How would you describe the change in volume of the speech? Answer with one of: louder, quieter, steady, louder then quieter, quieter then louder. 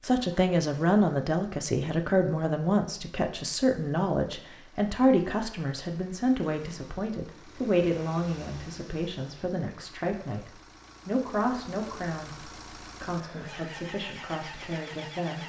quieter.